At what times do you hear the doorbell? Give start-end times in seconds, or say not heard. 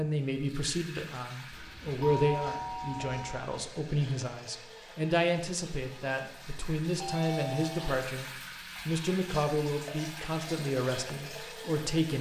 1.5-3.5, 7.0-8.0.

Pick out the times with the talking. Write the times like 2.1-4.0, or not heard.
0.0-12.1.